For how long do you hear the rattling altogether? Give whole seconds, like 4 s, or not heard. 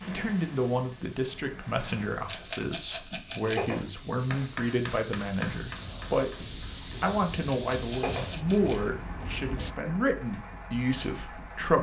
3 s.